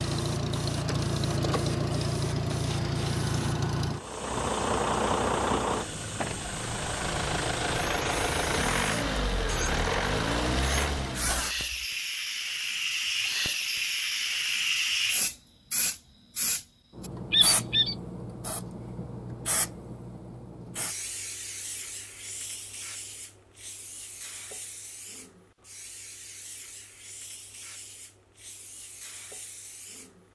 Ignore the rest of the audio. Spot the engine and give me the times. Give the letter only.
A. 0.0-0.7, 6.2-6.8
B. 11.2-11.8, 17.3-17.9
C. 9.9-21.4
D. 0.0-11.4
D.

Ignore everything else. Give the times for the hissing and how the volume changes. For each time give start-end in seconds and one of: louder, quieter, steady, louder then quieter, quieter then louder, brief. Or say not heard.
0.0-30.3 louder then quieter.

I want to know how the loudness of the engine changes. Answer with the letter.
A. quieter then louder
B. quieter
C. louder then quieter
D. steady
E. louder
D.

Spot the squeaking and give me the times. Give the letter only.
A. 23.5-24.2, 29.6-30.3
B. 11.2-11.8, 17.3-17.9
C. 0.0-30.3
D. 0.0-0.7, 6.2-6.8
B.